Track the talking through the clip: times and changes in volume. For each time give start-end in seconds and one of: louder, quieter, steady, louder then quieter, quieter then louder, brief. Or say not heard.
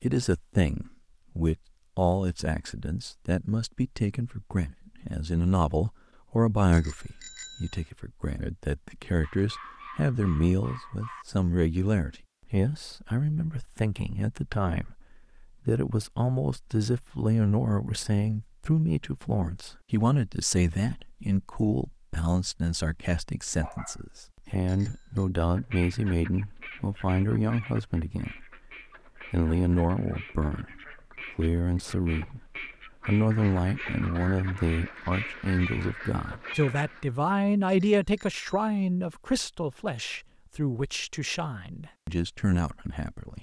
0.0-43.3 steady.